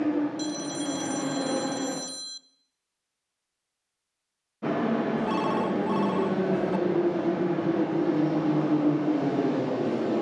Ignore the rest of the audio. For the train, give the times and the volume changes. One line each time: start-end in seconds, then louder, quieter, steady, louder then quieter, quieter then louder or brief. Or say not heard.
0.0-2.0 brief
4.6-10.1 steady.